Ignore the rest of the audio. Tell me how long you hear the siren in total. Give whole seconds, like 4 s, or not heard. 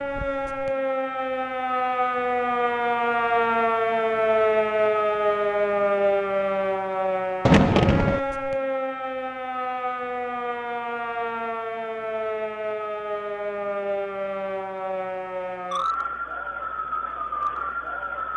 18 s.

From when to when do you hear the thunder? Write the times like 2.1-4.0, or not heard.
7.5-8.2.